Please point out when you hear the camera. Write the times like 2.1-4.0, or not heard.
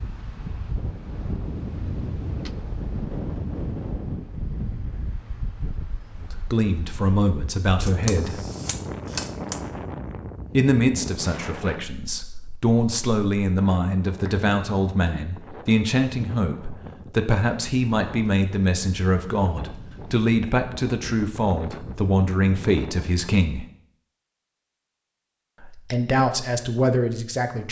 7.8-9.6.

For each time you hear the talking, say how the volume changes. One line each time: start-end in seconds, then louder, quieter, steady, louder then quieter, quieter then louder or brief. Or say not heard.
6.2-8.3 brief
10.6-23.6 steady
25.6-27.6 brief.